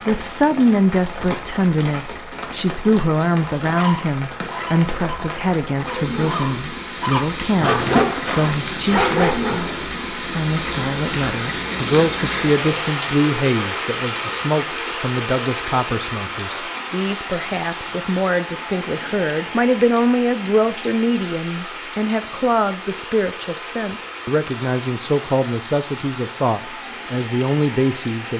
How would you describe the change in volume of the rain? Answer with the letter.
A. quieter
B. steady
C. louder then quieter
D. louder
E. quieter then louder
C.